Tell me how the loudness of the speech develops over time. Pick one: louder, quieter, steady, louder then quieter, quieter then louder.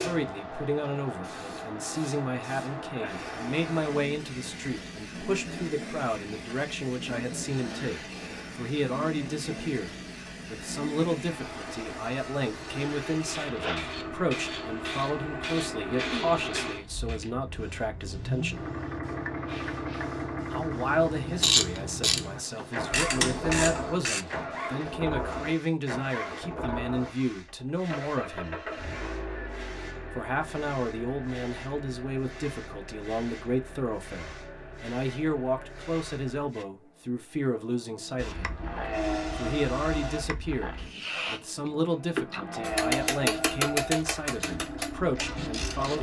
steady.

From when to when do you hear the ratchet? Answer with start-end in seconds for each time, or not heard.
21.4-24.2, 42.6-45.9.